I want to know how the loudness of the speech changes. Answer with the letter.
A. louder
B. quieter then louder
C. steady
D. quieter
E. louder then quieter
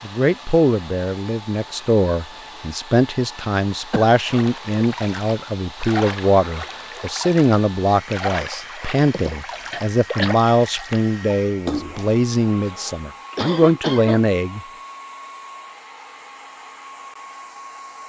C.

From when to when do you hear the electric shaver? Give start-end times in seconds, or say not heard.
not heard.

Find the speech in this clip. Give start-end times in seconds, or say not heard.
0.0-14.6.